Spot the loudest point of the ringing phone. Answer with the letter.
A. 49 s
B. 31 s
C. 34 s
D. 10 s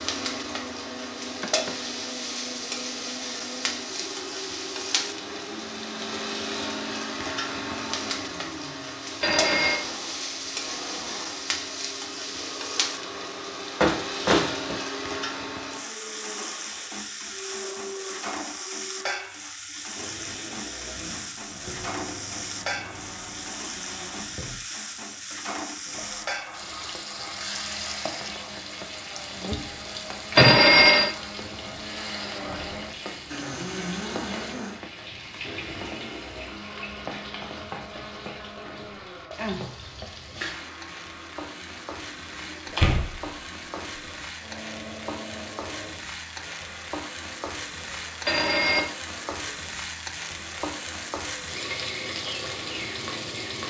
B.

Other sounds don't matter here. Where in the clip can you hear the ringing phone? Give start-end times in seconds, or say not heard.
9.2-9.8, 30.4-31.1, 48.2-48.9.